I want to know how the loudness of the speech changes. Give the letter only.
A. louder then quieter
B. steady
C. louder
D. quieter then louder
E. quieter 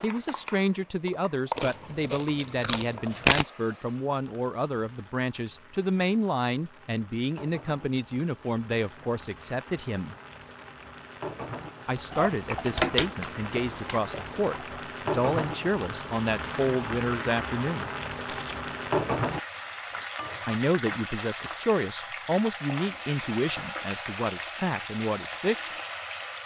B.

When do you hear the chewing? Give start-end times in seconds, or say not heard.
1.6-3.5, 12.1-14.8, 18.2-20.2.